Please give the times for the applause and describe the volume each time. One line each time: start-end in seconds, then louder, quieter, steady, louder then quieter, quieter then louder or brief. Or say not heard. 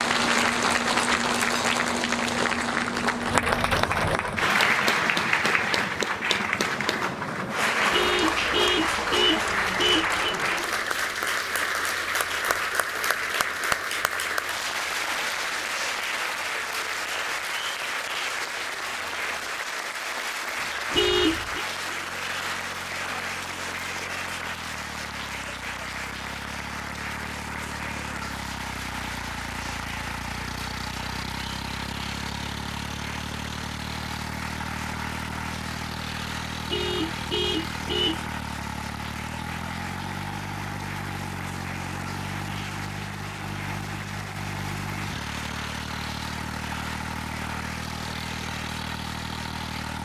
0.0-50.0 quieter.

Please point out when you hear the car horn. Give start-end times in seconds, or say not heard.
7.9-10.3, 20.9-21.6, 36.6-38.2.